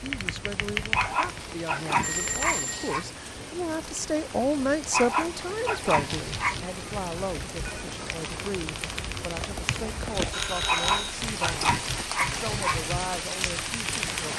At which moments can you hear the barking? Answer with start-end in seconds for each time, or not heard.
0.9-3.0, 4.9-6.6, 10.7-12.8.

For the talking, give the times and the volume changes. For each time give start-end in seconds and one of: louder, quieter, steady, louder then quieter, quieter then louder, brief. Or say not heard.
0.0-14.3 louder then quieter.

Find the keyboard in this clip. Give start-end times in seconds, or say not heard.
0.0-2.6, 6.1-14.3.